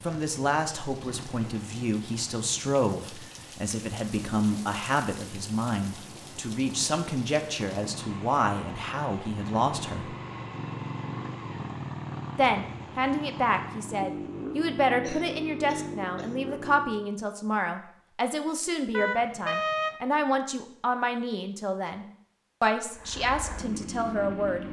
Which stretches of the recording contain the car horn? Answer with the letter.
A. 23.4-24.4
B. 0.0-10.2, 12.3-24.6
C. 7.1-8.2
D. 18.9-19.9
D.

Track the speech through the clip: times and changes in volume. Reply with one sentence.
The speech can be heard from 0.0 to 10.2 s, at a steady volume; and from 12.3 to 24.6 s, at a steady volume.